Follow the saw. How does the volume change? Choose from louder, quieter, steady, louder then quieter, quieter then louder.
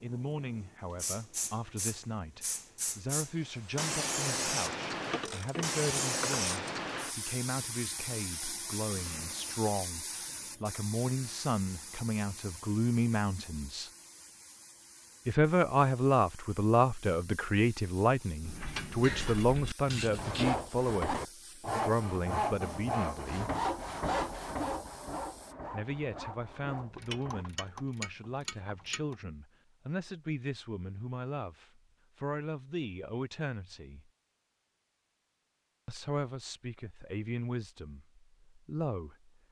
quieter.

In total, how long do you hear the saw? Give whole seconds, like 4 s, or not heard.
7 s.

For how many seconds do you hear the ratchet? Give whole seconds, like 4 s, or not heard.
6 s.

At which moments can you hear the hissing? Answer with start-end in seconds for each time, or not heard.
0.0-25.6.